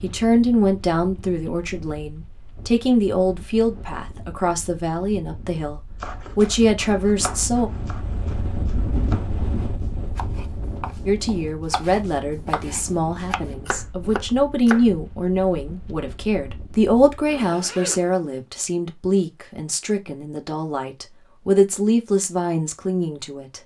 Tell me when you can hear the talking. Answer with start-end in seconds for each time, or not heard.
0.0-7.7, 11.1-23.6.